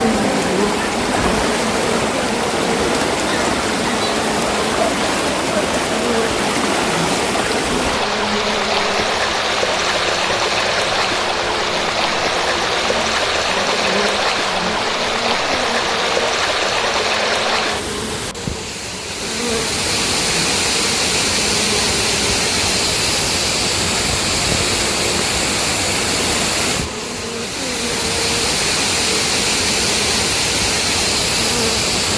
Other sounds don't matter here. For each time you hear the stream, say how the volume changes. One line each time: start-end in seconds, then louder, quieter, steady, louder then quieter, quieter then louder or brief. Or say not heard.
0.0-32.1 steady.